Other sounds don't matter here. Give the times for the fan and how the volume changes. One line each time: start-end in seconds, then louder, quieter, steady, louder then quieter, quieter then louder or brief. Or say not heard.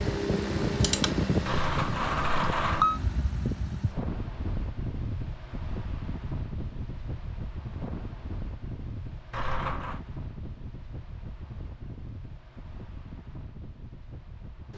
0.0-14.7 quieter.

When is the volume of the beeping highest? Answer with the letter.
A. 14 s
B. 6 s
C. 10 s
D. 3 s
D.